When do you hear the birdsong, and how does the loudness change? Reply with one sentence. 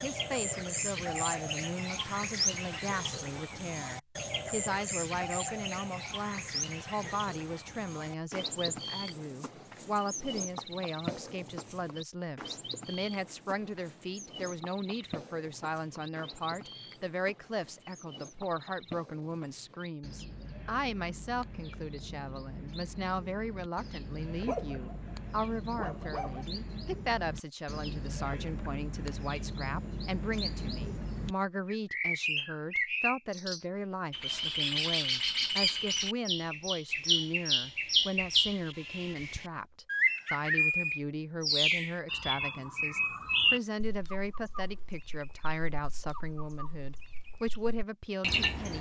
You can hear the birdsong from 0.0 to 48.7 s, getting quieter then louder.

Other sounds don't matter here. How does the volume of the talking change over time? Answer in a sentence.
The volume of the talking stays about the same.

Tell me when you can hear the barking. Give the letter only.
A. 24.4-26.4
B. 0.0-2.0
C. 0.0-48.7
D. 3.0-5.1
A.